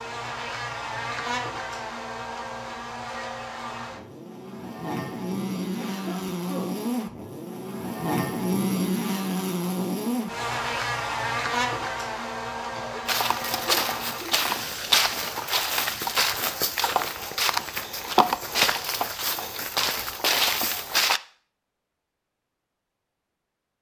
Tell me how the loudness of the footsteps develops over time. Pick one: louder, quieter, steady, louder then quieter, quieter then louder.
steady.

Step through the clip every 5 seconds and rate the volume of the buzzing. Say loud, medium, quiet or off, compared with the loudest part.
medium, loud, loud, off, off.